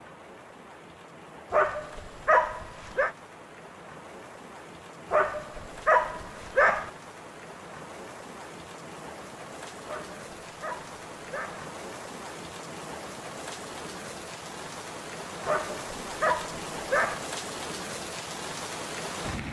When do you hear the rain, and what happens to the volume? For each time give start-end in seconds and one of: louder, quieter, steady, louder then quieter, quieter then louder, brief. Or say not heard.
0.0-19.4 louder.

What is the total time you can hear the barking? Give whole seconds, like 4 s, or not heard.
7 s.